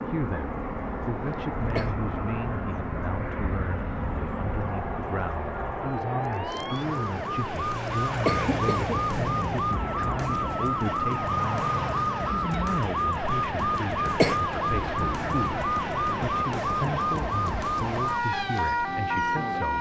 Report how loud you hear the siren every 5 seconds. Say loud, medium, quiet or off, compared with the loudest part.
quiet, loud, loud, loud.